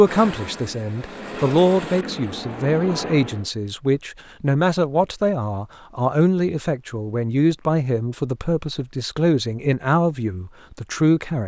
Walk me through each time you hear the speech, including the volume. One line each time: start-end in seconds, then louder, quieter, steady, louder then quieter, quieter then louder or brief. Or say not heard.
0.0-11.4 steady.